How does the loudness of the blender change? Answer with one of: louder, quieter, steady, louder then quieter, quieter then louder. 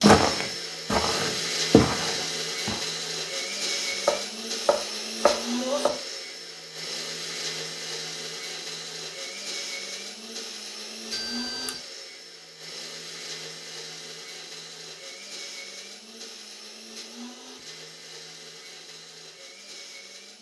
quieter.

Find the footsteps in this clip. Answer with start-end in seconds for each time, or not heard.
0.0-2.8.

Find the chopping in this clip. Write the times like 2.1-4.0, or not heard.
4.0-6.0.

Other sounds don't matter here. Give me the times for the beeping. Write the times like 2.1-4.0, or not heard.
11.1-11.8.